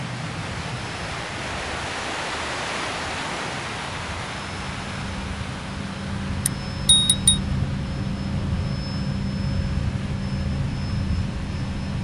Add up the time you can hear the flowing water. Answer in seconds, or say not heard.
12 s.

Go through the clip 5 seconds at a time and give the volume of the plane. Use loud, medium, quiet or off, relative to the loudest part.
medium, loud, loud.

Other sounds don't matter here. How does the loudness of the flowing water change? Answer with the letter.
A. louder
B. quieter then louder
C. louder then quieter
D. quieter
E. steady
D.